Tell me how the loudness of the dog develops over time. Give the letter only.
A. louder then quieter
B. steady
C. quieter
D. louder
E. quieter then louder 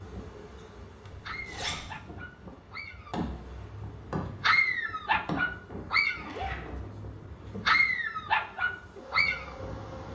D.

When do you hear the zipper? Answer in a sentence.
The zipper can be heard from 1.1 to 1.9 s and from 6.1 to 6.6 s.